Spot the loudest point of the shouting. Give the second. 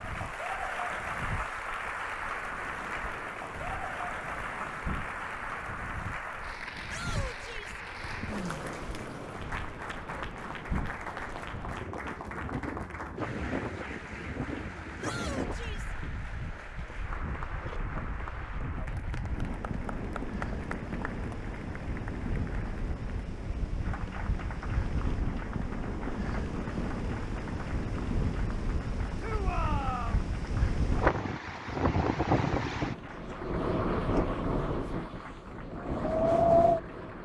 30 s.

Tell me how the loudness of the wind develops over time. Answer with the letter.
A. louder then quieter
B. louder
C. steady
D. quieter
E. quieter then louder
B.